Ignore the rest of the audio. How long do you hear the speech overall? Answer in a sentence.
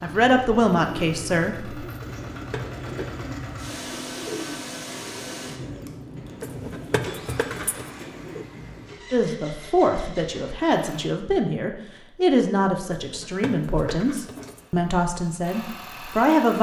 The speech can be heard for 9 seconds in total.